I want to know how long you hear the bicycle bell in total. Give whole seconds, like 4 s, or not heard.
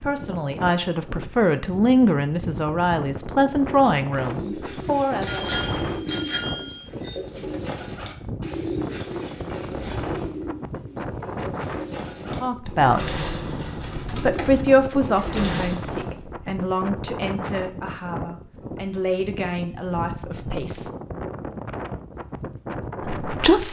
2 s.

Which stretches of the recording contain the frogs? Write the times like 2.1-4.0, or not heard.
not heard.